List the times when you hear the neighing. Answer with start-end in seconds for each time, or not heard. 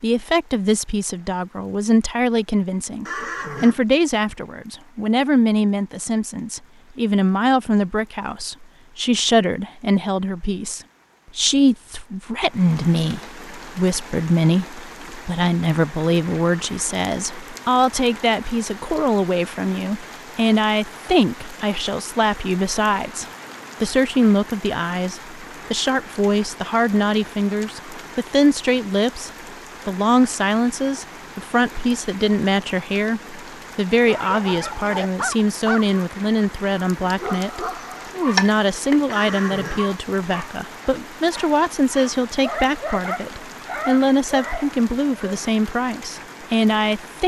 3.0-3.8, 39.1-39.9.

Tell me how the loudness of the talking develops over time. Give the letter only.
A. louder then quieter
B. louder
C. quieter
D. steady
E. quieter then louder
D.